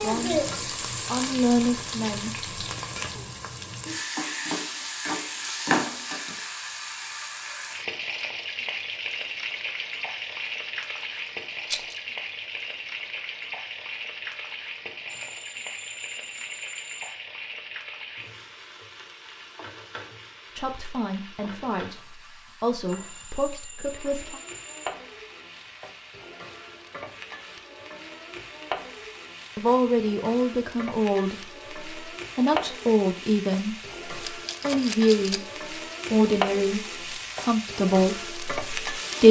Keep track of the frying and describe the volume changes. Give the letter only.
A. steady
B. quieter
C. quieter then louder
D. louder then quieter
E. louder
C.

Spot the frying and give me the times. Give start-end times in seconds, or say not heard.
0.0-39.2.